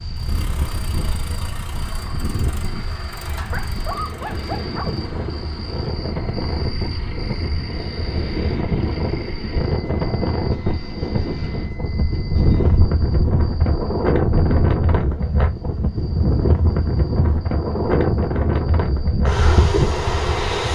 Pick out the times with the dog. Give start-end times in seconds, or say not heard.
3.5-5.0.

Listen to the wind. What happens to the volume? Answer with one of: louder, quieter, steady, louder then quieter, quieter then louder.
louder.